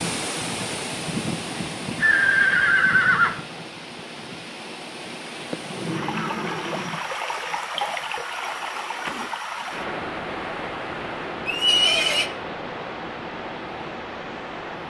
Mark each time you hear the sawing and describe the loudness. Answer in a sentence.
The sawing can't be heard in this clip.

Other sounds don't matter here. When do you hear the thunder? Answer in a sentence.
The thunder can be heard from 5.5 to 7.0 s.